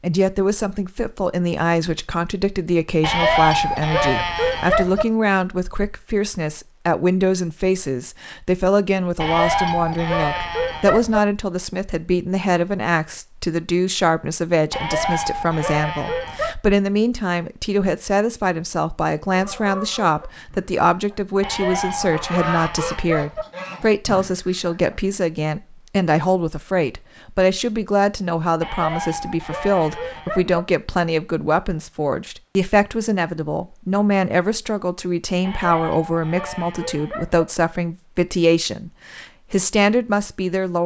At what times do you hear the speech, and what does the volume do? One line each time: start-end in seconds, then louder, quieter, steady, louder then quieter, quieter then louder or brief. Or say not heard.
0.0-40.8 steady.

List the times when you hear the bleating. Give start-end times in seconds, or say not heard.
3.0-5.0, 9.2-11.2, 14.7-16.6, 21.4-23.4, 28.6-30.6, 35.4-37.5.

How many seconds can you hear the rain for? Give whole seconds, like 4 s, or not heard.
not heard.